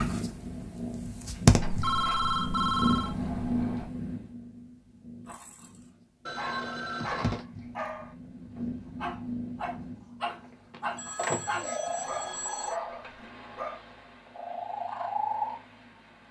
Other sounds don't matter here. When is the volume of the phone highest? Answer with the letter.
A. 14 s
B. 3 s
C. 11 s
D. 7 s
B.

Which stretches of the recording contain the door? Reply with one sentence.
You can hear the door from 1.6 to 3.9 s and from 10.3 to 11.7 s.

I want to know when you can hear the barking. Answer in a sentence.
The barking can be heard from 6.3 to 13.8 s.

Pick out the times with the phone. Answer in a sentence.
You can hear the phone from 1.6 to 3.1 s, from 6.2 to 7.5 s and from 10.9 to 12.8 s.